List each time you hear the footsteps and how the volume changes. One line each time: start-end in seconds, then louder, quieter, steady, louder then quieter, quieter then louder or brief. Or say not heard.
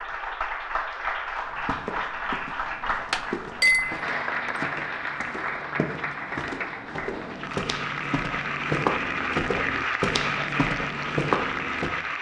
1.4-11.9 louder.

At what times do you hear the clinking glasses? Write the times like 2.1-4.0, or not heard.
3.1-4.5.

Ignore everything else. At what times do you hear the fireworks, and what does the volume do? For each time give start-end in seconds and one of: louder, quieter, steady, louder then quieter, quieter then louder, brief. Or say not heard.
not heard.